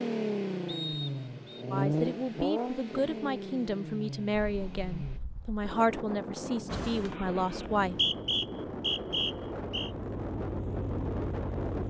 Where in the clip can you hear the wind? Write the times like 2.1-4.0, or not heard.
4.5-11.8.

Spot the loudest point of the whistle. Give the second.
8 s.